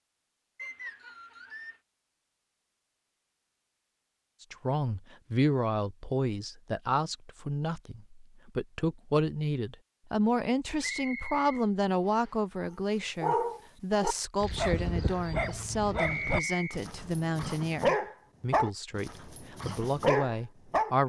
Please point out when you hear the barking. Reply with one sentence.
The barking can be heard from 13.2 to 20.9 s.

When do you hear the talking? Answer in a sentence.
You can hear the talking from 4.4 to 21.0 s.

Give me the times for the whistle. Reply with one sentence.
The whistle can be heard from 0.6 to 1.8 s, from 10.8 to 12.3 s and from 16.0 to 16.8 s.